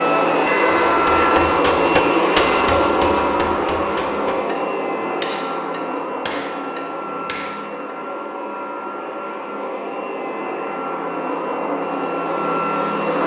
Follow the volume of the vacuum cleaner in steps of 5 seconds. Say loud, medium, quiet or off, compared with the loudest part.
loud, medium, medium.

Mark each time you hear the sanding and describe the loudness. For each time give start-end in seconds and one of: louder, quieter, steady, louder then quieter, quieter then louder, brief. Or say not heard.
not heard.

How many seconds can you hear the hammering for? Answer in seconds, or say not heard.
7 s.